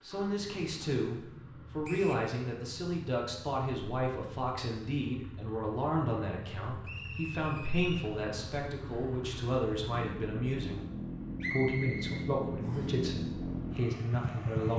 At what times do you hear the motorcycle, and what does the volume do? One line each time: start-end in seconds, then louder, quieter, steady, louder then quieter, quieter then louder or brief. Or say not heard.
0.0-14.7 louder.